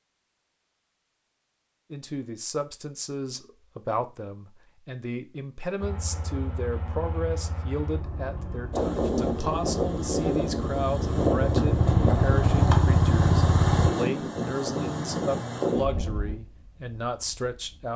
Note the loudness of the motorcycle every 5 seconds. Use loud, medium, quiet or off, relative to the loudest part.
off, quiet, loud, off.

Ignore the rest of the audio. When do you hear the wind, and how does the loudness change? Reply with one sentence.
You can hear the wind from 8.7 to 17.9 s, getting quieter.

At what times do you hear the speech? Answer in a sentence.
The speech can be heard from 1.9 to 17.9 s.